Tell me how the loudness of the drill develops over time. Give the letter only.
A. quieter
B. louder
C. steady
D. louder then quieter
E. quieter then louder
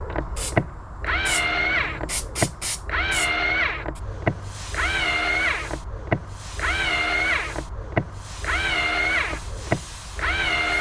C.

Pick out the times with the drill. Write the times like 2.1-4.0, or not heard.
0.0-10.7.